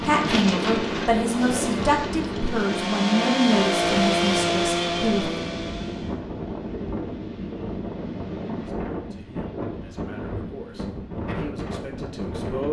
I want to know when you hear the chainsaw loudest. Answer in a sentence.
The volume of the chainsaw peaks at 4 seconds.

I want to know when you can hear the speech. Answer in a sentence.
You can hear the speech from 0.0 to 5.3 s and from 8.6 to 12.6 s.